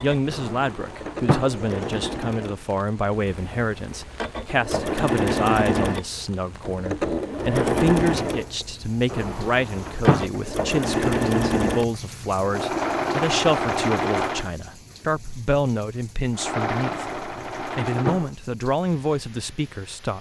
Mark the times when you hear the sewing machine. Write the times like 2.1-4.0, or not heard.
0.0-14.5, 16.3-18.2.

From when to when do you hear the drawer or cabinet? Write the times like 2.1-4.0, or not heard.
0.3-1.6, 9.1-10.2, 17.1-18.3.